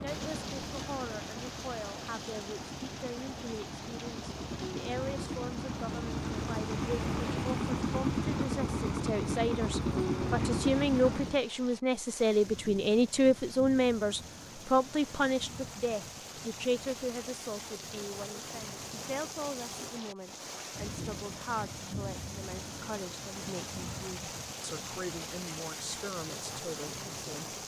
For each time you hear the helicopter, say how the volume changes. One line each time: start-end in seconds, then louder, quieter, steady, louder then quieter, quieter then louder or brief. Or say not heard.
0.0-11.4 louder.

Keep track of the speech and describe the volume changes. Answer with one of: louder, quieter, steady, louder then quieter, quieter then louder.
louder then quieter.